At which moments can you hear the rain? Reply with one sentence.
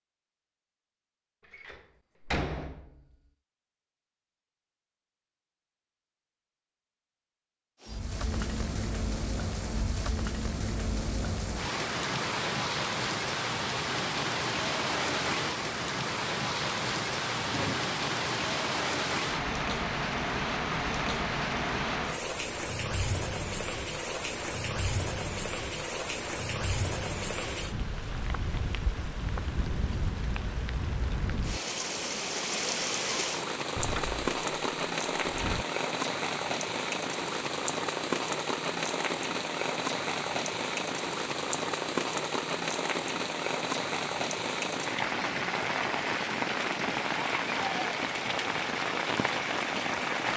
You can hear the rain from 7.8 to 50.3 s.